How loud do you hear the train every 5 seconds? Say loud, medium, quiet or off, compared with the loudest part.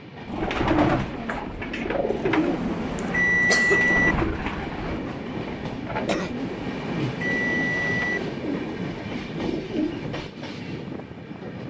medium, loud, loud.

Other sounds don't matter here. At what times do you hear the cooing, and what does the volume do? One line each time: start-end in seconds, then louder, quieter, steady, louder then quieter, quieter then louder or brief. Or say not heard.
0.2-10.2 quieter.